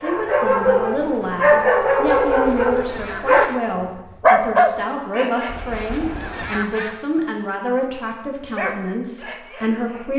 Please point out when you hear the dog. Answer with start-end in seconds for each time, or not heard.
0.0-5.5, 8.6-10.1.